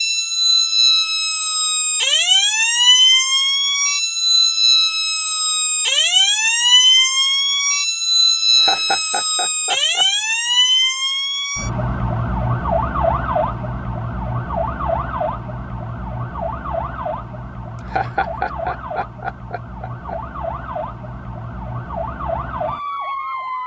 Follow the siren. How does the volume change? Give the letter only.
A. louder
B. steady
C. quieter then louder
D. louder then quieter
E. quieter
E.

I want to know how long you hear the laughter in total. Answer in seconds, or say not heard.
4 s.